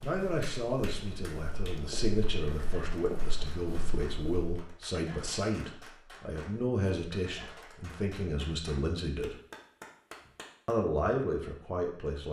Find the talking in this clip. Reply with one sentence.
You can hear the talking from 0.0 to 9.3 s and from 10.7 to 12.2 s.